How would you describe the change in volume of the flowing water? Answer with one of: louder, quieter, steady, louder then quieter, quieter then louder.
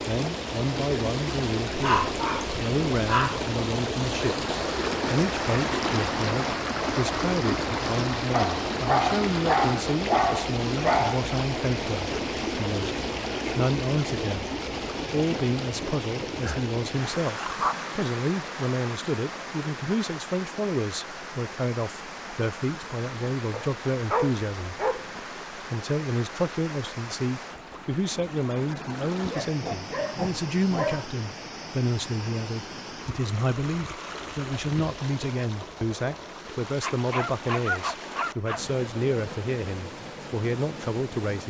quieter.